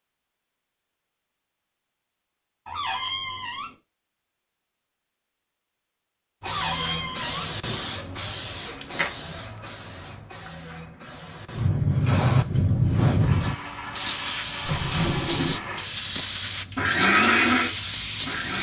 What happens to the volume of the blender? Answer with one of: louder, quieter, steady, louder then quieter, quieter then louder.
louder.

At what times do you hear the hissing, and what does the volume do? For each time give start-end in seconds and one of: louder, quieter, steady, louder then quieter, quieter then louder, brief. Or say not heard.
6.5-18.5 quieter then louder.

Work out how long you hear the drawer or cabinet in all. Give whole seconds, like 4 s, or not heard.
3 s.